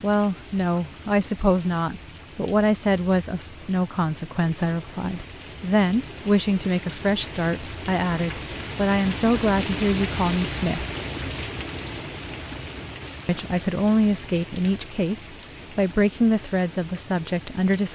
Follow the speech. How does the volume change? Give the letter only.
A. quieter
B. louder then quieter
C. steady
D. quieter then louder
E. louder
C.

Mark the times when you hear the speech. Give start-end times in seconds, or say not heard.
0.0-10.8, 13.2-17.9.